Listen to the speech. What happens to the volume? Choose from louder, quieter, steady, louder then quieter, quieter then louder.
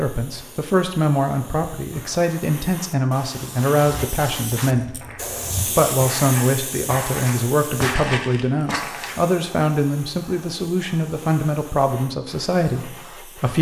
steady.